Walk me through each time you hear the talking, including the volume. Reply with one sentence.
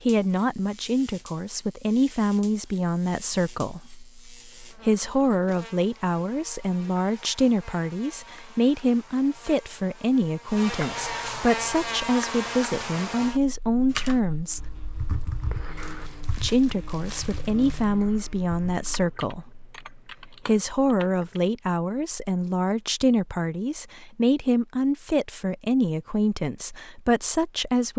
You can hear the talking from 0.0 to 14.7 s, at a steady volume; and from 16.4 to 27.9 s, at a steady volume.